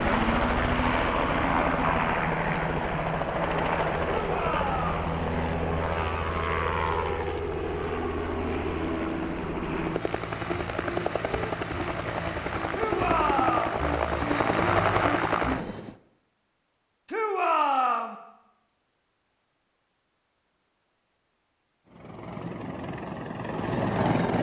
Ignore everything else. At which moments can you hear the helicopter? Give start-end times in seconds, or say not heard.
0.0-15.9, 21.9-24.3.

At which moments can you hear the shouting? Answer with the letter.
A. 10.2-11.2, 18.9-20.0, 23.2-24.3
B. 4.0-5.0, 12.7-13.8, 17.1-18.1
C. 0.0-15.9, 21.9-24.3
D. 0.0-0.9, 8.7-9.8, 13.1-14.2
B.